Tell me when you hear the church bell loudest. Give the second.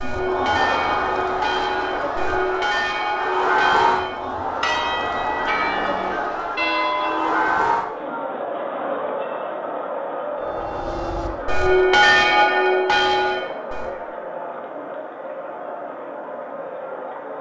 12 s.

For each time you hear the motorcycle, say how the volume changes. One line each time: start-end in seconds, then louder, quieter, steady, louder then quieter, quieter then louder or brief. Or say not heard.
not heard.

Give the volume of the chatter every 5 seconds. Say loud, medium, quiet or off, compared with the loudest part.
loud, loud, medium, medium.